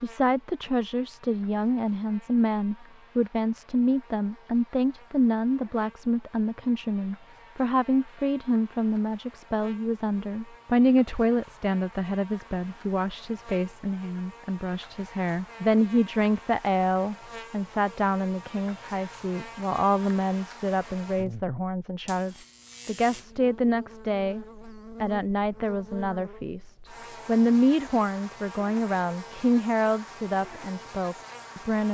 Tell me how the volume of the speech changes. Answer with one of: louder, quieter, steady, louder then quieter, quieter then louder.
steady.